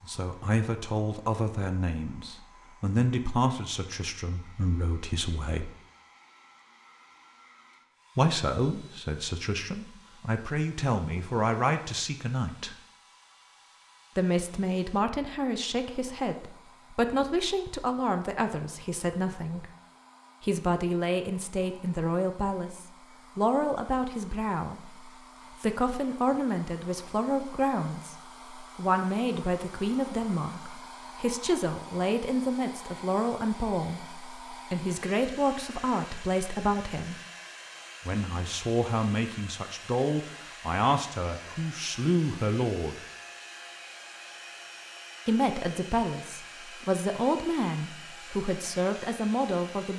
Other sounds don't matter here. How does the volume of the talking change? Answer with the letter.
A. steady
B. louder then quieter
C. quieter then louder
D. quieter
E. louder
A.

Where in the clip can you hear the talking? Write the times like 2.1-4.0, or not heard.
0.0-5.7, 8.2-12.8, 14.2-19.7, 20.4-37.1, 38.0-43.0, 45.2-49.9.